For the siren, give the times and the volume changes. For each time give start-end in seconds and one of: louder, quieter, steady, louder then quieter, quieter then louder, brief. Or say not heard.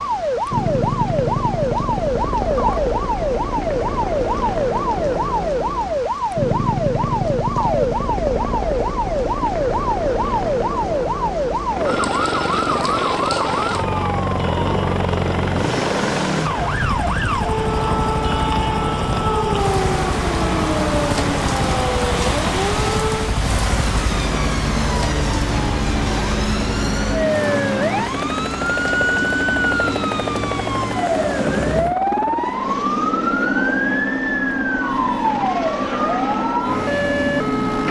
0.0-37.8 steady.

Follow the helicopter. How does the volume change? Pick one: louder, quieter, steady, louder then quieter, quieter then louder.
steady.